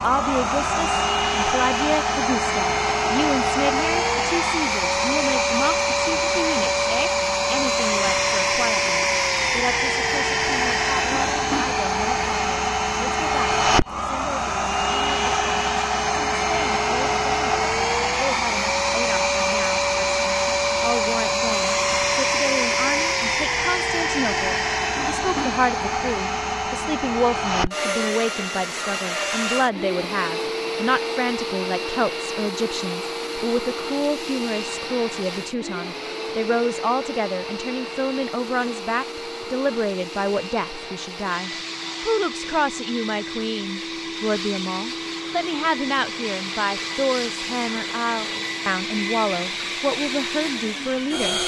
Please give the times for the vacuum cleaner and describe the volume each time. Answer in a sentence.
The vacuum cleaner can be heard from 0.0 to 51.4 s, getting quieter.